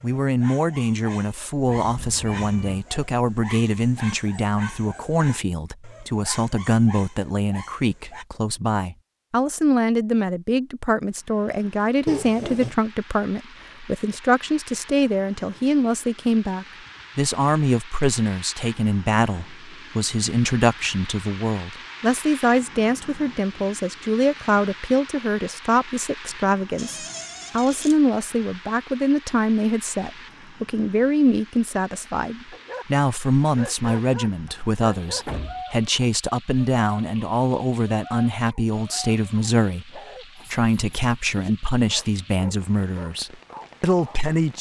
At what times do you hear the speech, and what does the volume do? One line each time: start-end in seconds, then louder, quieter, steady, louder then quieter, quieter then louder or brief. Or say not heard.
0.0-44.5 steady.